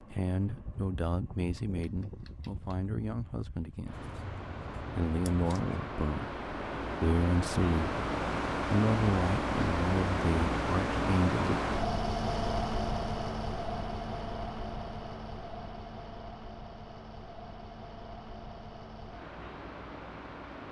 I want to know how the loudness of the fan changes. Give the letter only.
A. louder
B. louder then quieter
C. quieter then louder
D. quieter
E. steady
B.